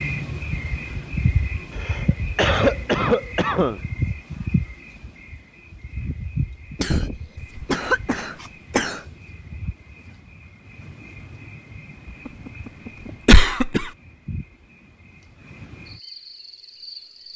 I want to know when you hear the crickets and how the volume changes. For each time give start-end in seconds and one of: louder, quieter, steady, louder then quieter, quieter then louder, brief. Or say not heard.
0.0-17.3 quieter.